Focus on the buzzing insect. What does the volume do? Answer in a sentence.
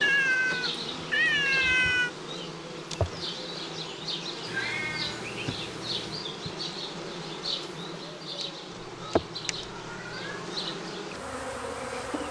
The volume of the buzzing insect stays about the same.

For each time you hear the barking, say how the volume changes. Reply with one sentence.
The barking can't be heard in this clip.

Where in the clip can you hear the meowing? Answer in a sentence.
The meowing can be heard from 0.0 to 2.1 s, from 4.5 to 6.2 s and from 8.9 to 10.6 s.